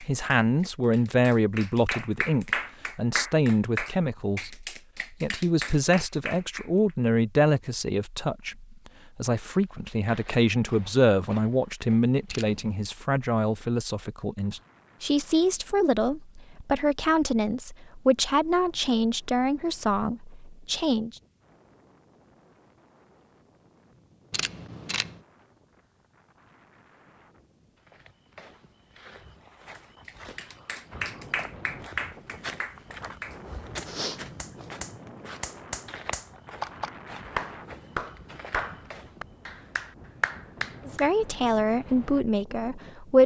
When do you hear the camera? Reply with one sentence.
You can hear the camera from 12.2 to 12.9 s and from 24.3 to 25.1 s.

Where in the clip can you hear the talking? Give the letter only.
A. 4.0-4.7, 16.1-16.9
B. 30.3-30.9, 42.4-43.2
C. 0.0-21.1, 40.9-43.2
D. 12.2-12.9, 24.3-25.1
C.